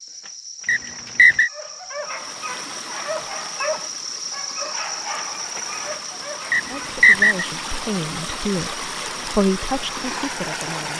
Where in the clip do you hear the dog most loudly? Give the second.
4 s.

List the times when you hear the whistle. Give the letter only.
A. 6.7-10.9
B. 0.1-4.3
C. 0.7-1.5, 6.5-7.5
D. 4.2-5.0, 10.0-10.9
C.